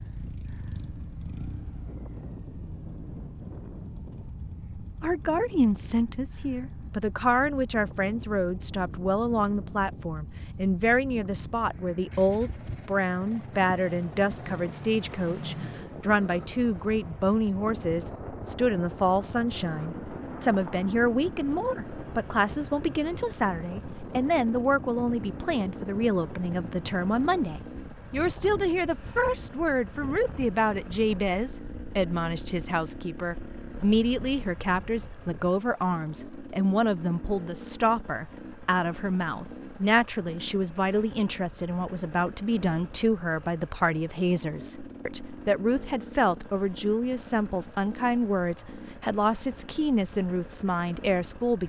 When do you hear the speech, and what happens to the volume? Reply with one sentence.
The speech can be heard from 5.0 to 51.6 s, at a steady volume.